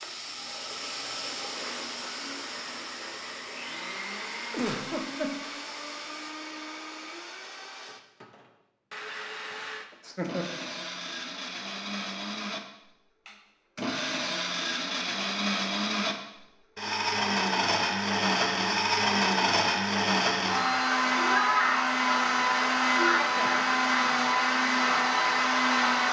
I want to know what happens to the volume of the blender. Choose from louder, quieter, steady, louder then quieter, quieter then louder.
louder.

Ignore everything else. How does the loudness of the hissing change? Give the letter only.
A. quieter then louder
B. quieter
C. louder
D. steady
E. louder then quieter
B.